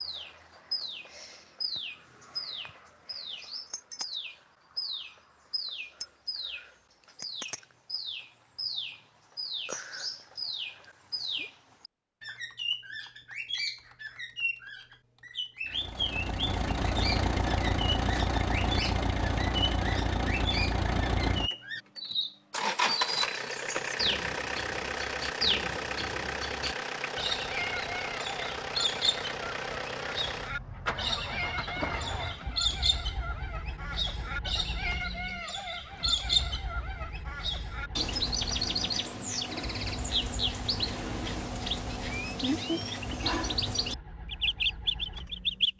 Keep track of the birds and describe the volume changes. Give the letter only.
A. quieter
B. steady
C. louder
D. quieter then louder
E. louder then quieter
C.